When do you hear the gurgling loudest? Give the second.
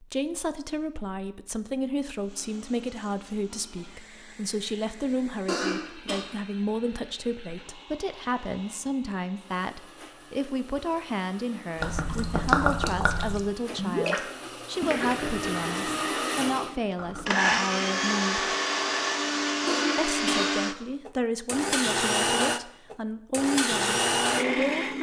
13 s.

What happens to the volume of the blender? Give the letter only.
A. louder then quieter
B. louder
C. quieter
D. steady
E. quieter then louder
B.